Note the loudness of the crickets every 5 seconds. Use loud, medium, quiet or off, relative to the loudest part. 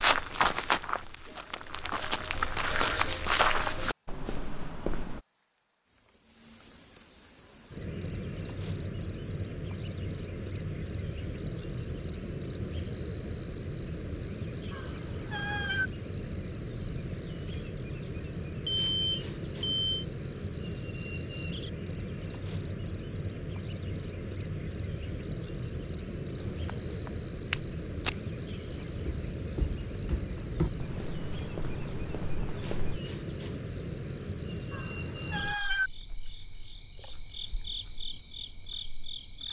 medium, loud, loud, loud, loud, loud, loud, medium.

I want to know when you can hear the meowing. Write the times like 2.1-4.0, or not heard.
14.7-15.9, 34.7-35.9.